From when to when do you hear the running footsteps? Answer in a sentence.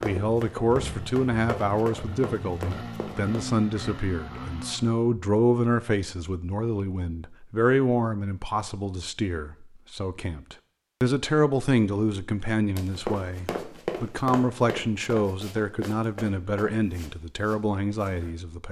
The running footsteps can be heard from 0.0 to 3.4 s and from 12.8 to 18.4 s.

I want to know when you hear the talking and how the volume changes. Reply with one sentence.
The talking can be heard from 0.0 to 18.6 s, at a steady volume.